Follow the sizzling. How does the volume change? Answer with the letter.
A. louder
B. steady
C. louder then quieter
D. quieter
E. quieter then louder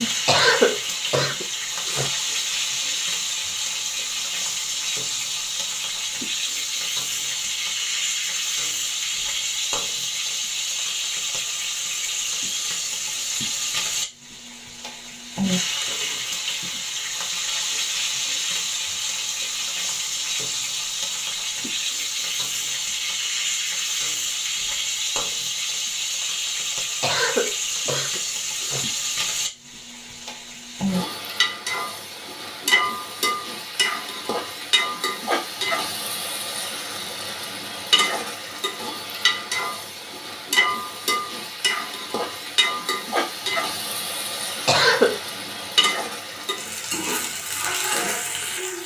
B.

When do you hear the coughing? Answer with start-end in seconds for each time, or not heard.
0.2-2.1, 27.0-28.9, 44.6-45.2.